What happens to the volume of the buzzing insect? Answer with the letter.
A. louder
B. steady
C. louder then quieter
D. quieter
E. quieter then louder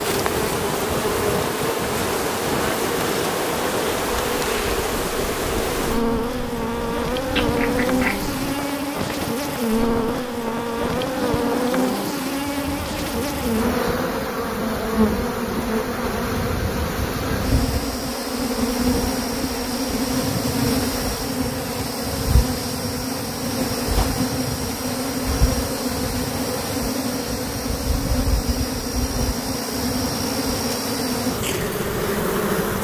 B.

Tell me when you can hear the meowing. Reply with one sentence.
The meowing can be heard from 7.3 to 8.6 s.